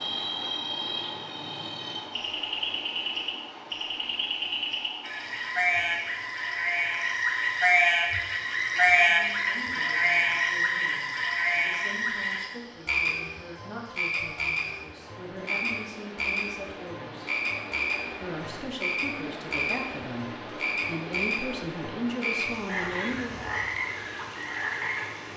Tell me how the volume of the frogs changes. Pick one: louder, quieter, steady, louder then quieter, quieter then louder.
louder then quieter.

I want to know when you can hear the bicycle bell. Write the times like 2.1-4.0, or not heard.
not heard.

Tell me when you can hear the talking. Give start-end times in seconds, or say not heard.
8.8-17.3, 18.1-23.4.